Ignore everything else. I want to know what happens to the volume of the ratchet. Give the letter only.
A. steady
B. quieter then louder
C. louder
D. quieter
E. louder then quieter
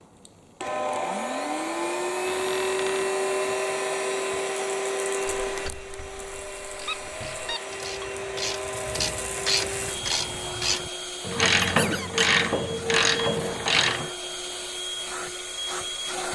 C.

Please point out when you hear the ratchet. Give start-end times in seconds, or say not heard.
5.5-14.1.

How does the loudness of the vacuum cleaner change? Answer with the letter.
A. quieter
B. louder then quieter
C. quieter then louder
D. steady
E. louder
A.